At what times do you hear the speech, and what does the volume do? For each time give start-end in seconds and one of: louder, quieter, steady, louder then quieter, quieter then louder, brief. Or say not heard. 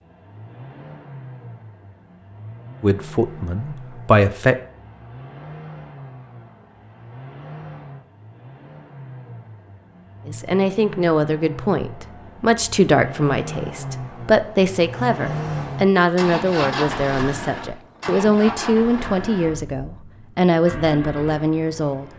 2.8-4.5 brief
10.2-22.1 steady.